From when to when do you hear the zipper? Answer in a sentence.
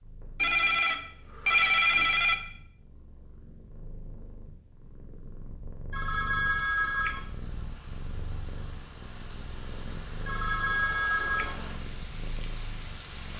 The zipper can't be heard in this clip.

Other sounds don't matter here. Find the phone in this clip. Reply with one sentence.
You can hear the phone from 0.3 to 2.4 s, from 5.9 to 7.2 s and from 10.2 to 11.6 s.